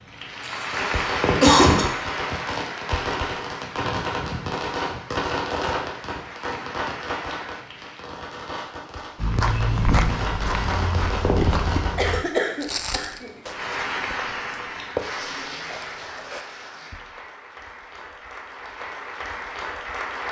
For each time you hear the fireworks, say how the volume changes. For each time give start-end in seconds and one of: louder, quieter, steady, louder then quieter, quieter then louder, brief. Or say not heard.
0.7-12.2 quieter then louder.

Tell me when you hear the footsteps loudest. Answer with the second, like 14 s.
10 s.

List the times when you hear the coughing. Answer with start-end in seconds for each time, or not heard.
0.4-1.9, 11.9-13.3.